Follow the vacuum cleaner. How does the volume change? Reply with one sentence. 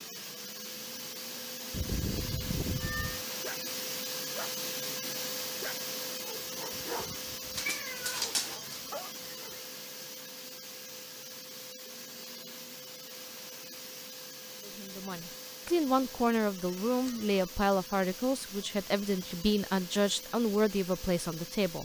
The loudness of the vacuum cleaner goes down.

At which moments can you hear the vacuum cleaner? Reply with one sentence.
The vacuum cleaner can be heard from 0.0 to 21.7 s.